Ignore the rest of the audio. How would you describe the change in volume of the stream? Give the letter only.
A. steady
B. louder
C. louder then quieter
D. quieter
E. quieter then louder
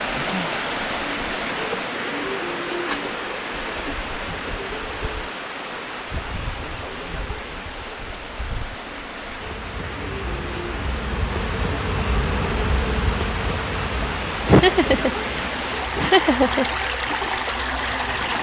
E.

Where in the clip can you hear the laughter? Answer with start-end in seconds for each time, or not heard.
14.4-16.6.